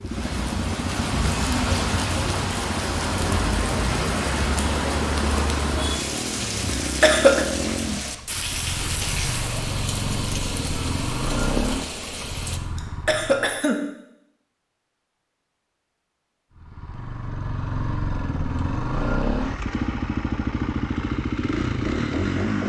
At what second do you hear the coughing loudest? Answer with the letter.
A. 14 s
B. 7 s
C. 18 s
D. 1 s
B.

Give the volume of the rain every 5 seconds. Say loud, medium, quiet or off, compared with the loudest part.
loud, loud, medium, off, off.